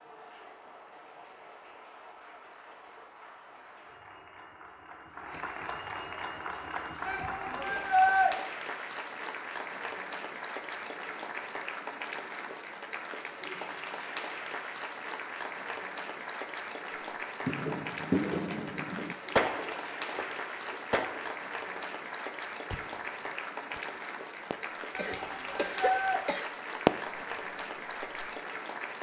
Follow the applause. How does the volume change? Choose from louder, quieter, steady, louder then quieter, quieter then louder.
louder.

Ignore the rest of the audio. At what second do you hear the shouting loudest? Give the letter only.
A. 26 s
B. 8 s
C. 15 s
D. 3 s
B.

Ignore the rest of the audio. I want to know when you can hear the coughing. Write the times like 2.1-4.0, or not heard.
24.9-26.5.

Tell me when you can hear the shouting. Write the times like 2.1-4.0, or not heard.
7.0-8.3, 24.9-26.2.